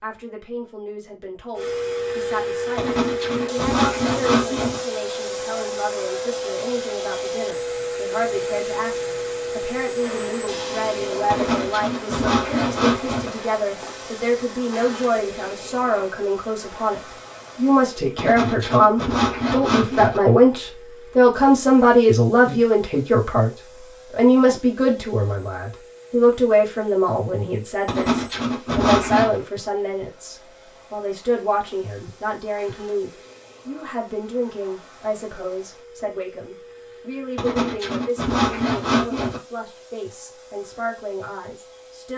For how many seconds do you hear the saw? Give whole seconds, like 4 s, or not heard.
10 s.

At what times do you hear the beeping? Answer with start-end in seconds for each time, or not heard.
not heard.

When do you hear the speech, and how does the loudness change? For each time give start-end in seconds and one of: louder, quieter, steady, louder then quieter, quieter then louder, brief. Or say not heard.
0.0-42.1 louder then quieter.